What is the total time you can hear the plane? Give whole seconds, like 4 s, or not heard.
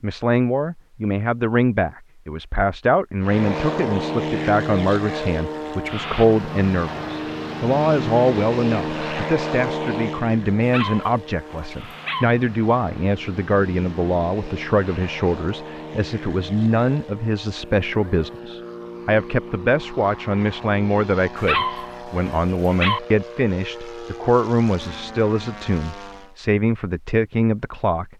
23 s.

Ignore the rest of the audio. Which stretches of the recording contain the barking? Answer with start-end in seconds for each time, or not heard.
10.6-12.2, 21.4-23.0.